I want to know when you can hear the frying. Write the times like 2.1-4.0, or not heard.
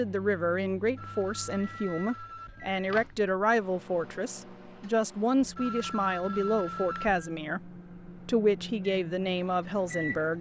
not heard.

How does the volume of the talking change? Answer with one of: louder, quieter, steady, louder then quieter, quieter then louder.
steady.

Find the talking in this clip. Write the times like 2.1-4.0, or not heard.
0.0-10.3.